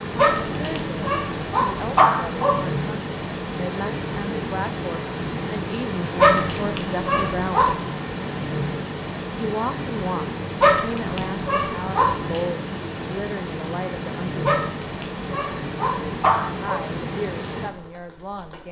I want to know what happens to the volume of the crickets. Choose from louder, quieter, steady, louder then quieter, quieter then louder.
steady.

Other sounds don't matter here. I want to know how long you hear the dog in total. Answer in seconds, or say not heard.
8 s.